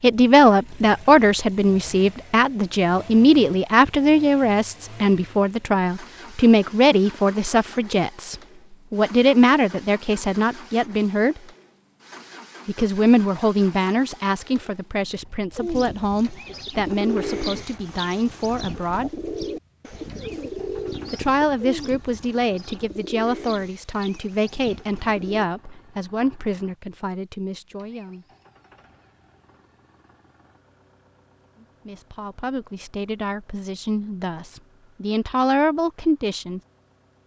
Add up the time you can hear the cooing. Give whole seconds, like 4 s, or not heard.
10 s.